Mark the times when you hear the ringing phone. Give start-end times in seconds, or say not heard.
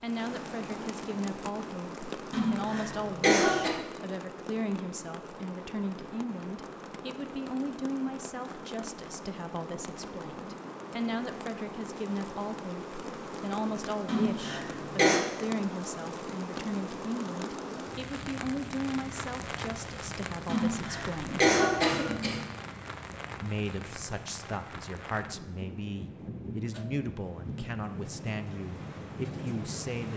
not heard.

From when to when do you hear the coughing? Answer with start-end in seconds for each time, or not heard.
2.3-3.8, 14.1-15.2, 20.4-22.4.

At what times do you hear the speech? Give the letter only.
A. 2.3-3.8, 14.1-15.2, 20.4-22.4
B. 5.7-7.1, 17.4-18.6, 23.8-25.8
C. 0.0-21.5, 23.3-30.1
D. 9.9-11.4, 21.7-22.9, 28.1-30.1
C.